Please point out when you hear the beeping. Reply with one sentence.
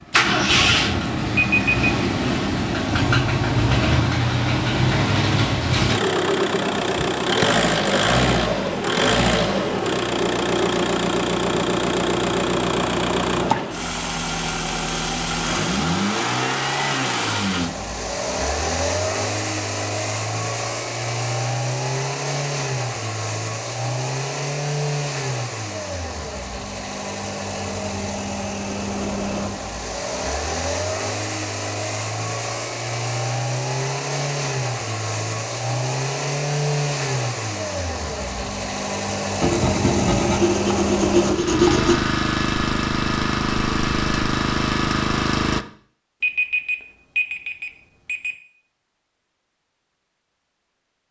The beeping can be heard from 1.4 to 1.9 s and from 46.2 to 48.4 s.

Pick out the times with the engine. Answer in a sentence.
The engine can be heard from 0.0 to 45.6 s.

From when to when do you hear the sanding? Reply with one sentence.
The sanding can be heard from 39.4 to 42.0 s.